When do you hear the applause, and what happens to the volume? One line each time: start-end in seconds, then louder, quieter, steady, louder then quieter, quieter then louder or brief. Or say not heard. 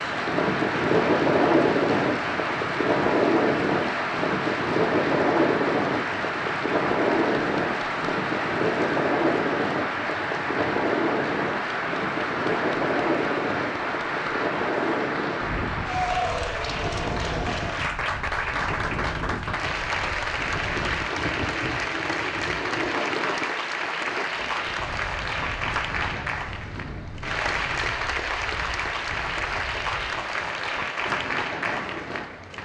0.0-32.6 steady.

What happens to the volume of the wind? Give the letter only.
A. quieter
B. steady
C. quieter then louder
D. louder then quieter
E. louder
A.